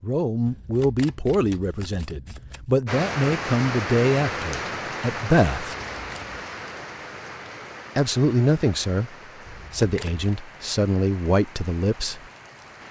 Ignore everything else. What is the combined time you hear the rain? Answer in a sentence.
The rain can be heard for 10 seconds in total.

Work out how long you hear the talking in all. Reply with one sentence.
You can hear the talking for 10 seconds altogether.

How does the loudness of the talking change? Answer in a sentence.
The loudness of the talking stays about the same.